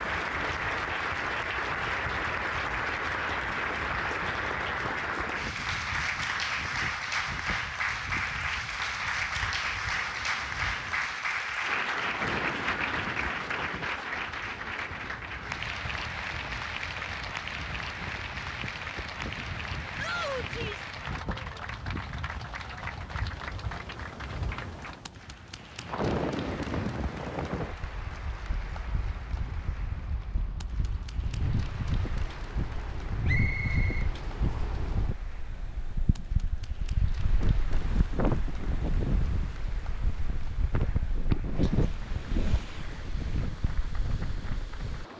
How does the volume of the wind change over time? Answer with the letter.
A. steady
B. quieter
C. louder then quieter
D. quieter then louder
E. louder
E.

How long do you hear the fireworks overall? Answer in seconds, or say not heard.
not heard.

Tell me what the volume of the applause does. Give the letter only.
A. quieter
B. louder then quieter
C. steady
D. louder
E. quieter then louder
A.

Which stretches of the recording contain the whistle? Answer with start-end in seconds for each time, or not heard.
33.2-34.6.